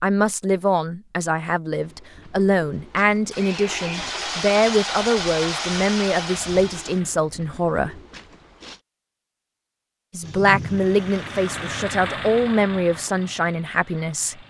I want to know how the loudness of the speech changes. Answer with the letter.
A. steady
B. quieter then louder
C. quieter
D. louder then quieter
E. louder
A.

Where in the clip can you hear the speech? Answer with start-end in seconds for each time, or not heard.
0.0-8.0, 10.1-14.4.